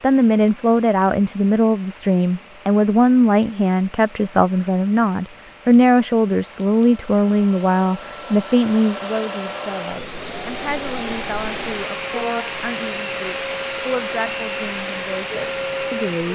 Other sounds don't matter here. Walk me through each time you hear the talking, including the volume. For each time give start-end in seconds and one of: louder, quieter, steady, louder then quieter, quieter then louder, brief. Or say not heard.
0.0-16.2 quieter.